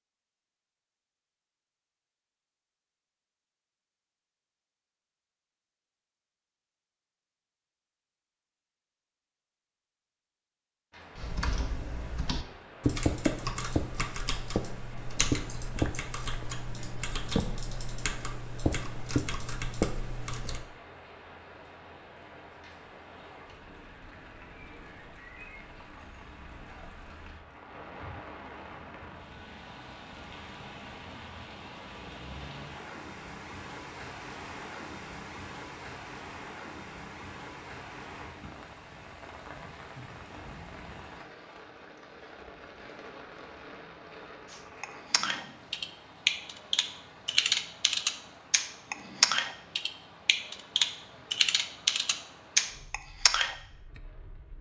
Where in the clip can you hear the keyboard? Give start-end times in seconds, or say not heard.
11.2-20.6, 44.5-54.0.